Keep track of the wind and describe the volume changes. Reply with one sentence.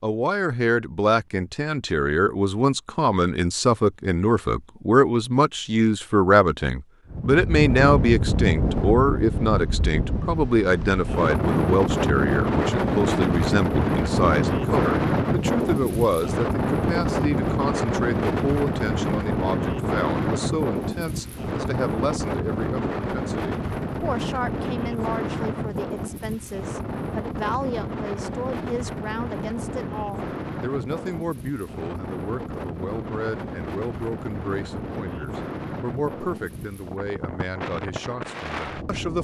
The loudness of the wind goes down.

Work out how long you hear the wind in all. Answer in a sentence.
You can hear the wind for 32 seconds altogether.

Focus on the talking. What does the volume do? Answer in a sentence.
The loudness of the talking goes down.